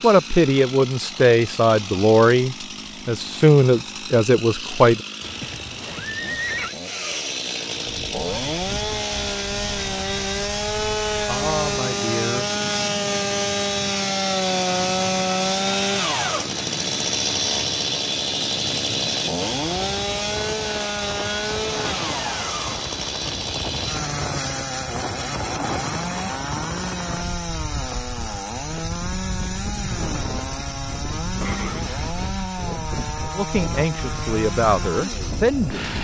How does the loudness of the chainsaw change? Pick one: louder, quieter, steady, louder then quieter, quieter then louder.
louder then quieter.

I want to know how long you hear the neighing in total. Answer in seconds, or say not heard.
2 s.